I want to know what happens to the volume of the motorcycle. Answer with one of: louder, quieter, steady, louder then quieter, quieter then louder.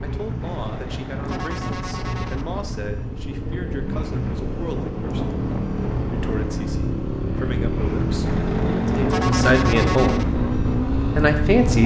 louder.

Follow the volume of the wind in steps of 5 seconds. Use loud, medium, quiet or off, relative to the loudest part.
medium, loud, loud.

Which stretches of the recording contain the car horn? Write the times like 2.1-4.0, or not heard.
0.4-2.5, 8.2-10.2.